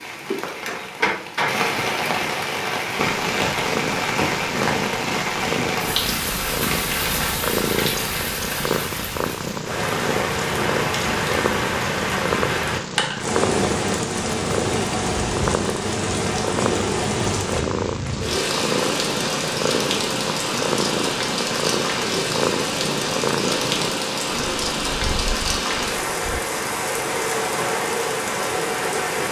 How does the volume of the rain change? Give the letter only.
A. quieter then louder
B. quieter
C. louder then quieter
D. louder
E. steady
E.